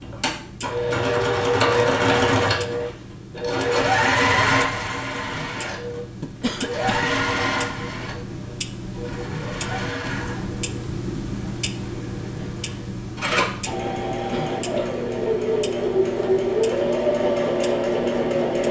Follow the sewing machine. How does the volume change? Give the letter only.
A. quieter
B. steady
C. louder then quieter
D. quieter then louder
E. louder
D.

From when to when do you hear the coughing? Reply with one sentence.
The coughing can be heard from 6.2 to 7.1 s and from 14.1 to 14.9 s.